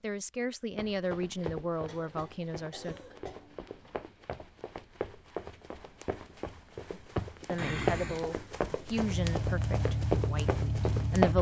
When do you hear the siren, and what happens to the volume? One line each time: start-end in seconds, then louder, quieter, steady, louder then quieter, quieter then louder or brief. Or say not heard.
not heard.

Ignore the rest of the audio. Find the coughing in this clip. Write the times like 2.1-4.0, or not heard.
1.8-4.0, 7.5-8.3.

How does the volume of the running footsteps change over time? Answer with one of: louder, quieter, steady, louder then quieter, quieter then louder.
louder.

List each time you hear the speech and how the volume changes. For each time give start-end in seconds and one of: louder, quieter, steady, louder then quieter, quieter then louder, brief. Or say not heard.
0.0-3.0 brief
6.9-11.3 quieter.